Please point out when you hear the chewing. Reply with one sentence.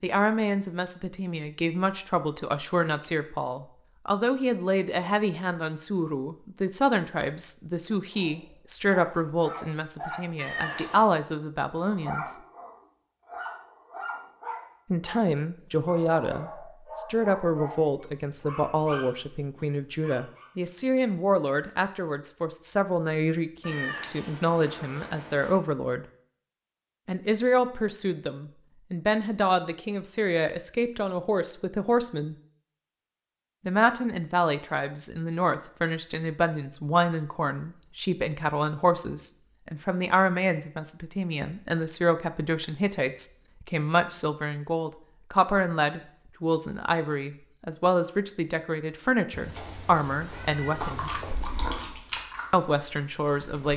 The chewing can be heard from 50.8 to 53.7 s.